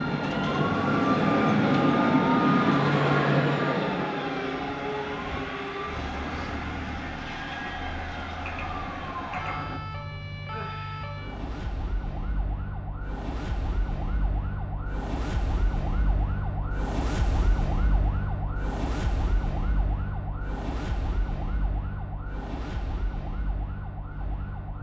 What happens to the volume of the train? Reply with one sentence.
The volume of the train goes down.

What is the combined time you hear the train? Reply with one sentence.
You can hear the train for 10 seconds altogether.